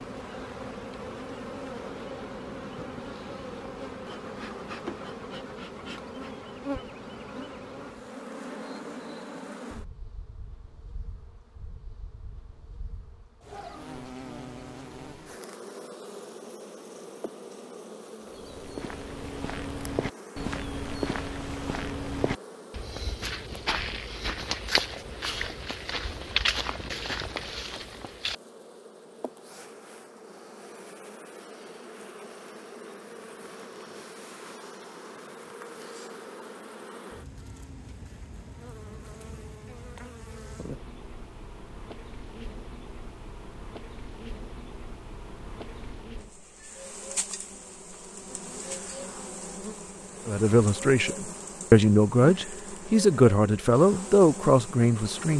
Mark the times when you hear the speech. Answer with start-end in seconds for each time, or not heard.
50.2-55.3.